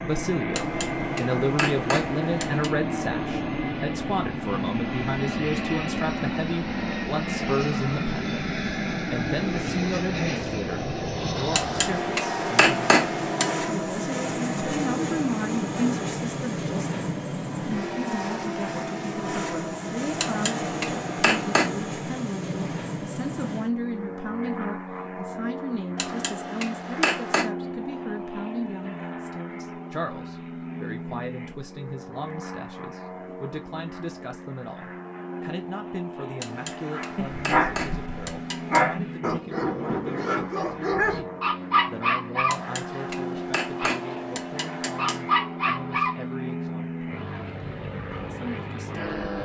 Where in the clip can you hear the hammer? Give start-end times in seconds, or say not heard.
0.5-2.7, 11.5-13.6, 20.1-21.8, 25.9-27.5, 36.4-38.9, 42.5-45.4.